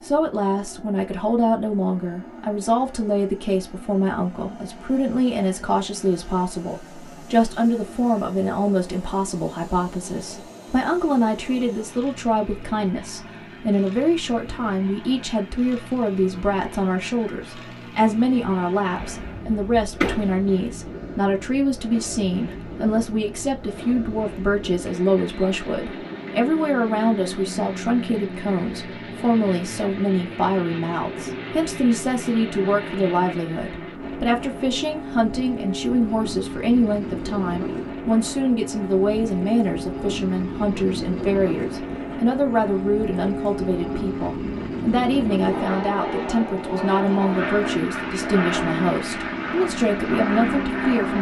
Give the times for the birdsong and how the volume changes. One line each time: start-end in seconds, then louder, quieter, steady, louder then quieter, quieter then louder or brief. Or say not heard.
not heard.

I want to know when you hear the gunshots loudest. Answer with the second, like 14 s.
20 s.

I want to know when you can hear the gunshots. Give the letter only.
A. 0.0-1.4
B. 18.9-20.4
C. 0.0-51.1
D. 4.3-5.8
B.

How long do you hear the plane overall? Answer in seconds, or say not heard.
51 s.